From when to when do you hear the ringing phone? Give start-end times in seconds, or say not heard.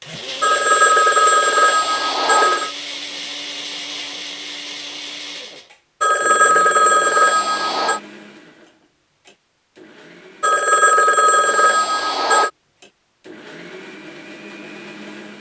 0.4-2.8, 6.0-8.0, 10.4-12.5.